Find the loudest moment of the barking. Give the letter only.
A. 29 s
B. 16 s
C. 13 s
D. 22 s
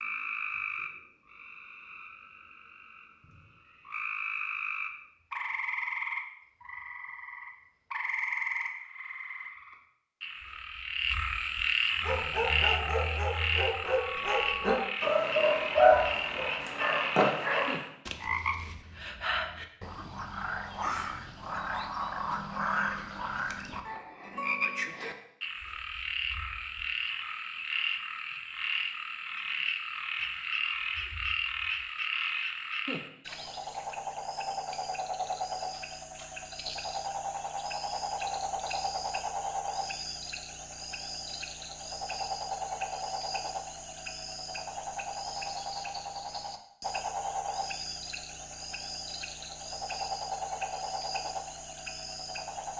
B.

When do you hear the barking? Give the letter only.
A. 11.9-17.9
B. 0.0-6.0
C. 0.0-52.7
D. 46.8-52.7
A.